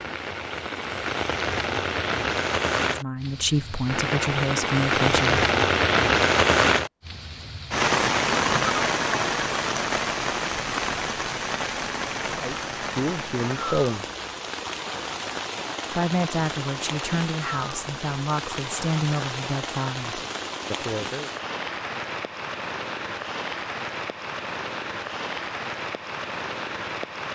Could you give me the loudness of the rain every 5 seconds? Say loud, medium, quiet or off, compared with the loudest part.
medium, loud, medium, medium, medium, medium.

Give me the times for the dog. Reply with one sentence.
You can't hear the dog here.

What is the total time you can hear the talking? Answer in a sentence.
You can hear the talking for 10 seconds altogether.